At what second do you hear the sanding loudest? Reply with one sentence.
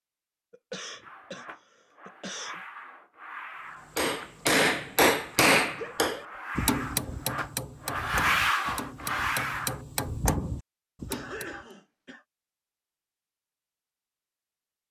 The volume of the sanding peaks at 8 seconds.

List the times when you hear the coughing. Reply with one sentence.
You can hear the coughing from 0.5 to 2.6 s, from 5.7 to 6.4 s and from 11.1 to 12.2 s.